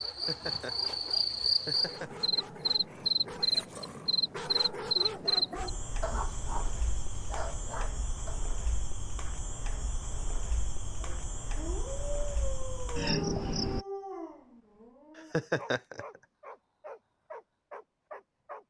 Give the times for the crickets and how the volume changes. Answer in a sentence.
The crickets can be heard from 0.0 to 13.8 s, getting quieter then louder.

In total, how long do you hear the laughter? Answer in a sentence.
The laughter can be heard for 3 seconds in total.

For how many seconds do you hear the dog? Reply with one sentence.
You can hear the dog for 16 seconds altogether.